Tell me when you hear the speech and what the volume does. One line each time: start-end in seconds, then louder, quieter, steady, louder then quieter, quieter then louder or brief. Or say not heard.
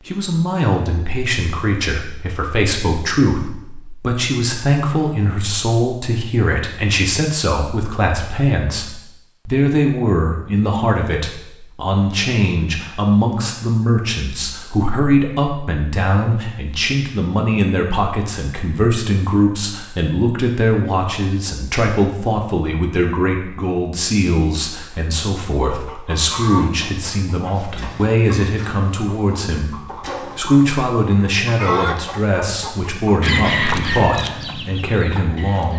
0.1-35.7 steady.